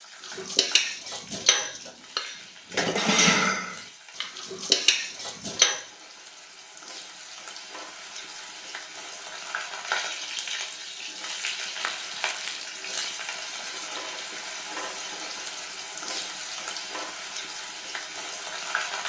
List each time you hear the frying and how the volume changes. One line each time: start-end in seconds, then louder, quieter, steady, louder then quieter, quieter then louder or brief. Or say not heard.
0.0-19.0 louder.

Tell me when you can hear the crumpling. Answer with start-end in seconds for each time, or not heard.
11.8-13.5.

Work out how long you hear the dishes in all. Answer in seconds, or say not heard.
6 s.